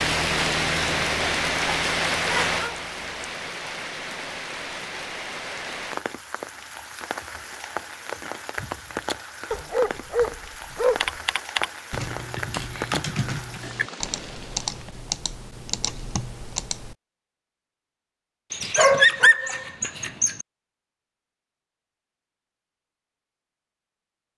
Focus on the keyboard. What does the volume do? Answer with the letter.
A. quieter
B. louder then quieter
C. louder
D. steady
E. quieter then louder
A.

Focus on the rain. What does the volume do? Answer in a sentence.
The loudness of the rain goes down.